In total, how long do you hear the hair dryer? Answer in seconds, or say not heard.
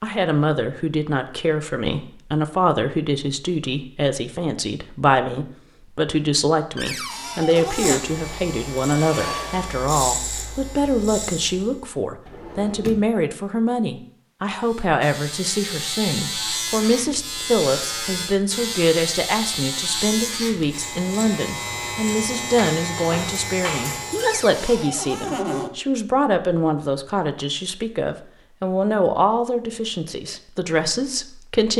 2 s.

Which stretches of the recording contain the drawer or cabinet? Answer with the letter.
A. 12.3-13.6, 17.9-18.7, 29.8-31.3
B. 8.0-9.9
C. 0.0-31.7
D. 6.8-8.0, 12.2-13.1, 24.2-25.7
D.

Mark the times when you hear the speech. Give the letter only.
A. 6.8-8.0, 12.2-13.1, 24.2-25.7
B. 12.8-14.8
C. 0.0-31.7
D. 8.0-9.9
C.